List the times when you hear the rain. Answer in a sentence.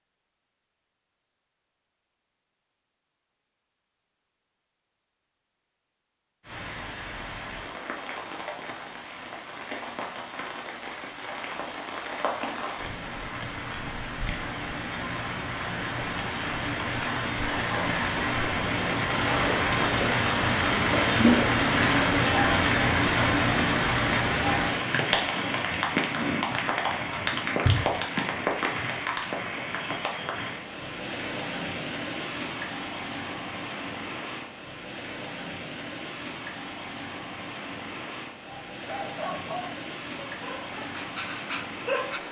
You can hear the rain from 6.4 to 42.2 s.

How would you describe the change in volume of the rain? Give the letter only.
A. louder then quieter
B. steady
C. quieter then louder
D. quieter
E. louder
A.